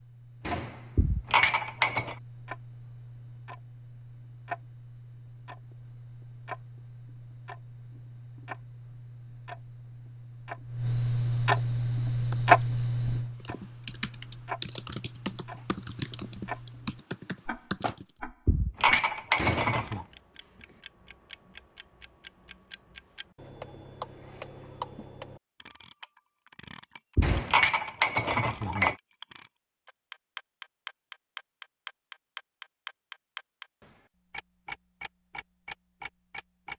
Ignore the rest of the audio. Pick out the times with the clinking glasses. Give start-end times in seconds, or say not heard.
0.9-2.1, 18.4-20.1, 27.1-28.9.